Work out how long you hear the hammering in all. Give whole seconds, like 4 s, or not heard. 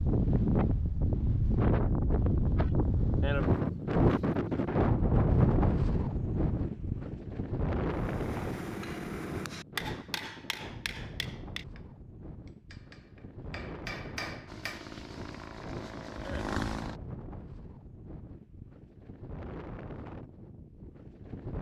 7 s.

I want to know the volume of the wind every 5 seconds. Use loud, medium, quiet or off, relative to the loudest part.
loud, loud, quiet, quiet, quiet.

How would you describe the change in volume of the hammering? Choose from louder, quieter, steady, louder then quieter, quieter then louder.
quieter then louder.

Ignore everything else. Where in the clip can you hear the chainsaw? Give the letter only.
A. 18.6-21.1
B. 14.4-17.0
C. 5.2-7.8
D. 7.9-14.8
B.